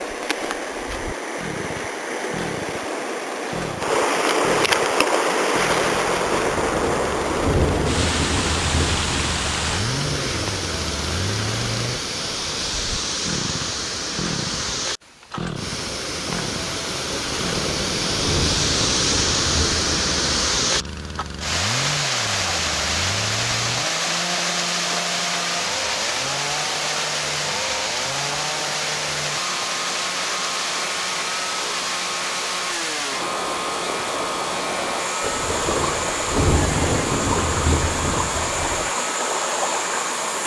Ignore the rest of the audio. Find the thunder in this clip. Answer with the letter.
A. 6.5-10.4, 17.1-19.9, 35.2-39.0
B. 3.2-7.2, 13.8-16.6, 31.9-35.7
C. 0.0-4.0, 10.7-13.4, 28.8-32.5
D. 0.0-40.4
A.